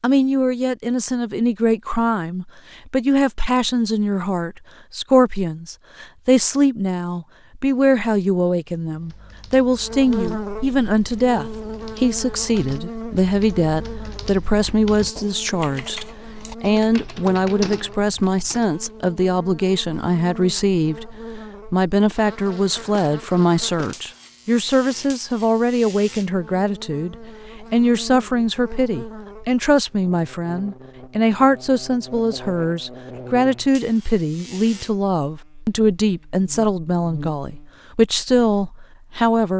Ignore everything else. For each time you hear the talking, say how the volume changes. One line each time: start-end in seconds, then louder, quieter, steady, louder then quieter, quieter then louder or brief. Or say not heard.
0.0-39.5 steady.